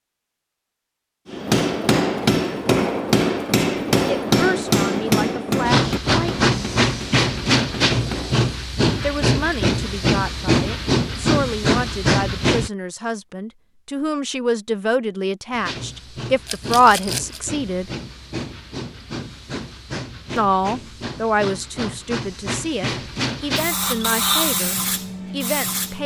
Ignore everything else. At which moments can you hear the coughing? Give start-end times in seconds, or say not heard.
not heard.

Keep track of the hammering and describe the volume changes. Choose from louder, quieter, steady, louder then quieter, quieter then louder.
quieter.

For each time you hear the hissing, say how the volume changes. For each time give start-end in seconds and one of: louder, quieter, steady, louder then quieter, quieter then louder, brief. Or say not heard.
5.7-12.7 steady
15.5-26.0 louder.